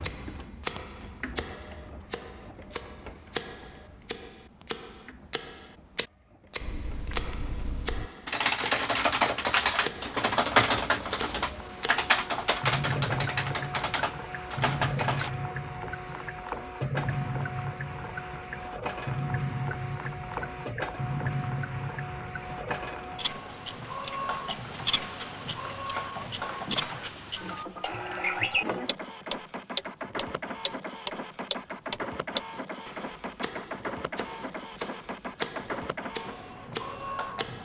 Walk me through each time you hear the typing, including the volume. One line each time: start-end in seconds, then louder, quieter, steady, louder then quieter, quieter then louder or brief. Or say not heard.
6.6-15.3 louder then quieter.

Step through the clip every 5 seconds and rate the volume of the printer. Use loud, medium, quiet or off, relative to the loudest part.
medium, quiet, loud, loud, loud, loud, loud, loud.